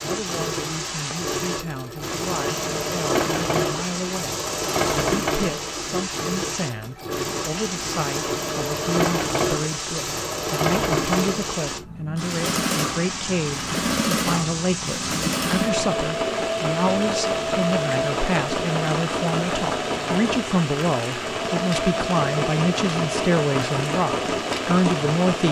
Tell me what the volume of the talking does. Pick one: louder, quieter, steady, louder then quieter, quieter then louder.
louder.